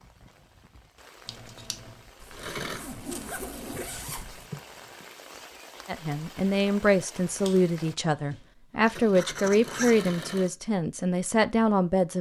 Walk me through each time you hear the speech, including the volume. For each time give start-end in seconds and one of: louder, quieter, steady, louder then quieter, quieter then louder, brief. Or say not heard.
5.8-12.1 steady.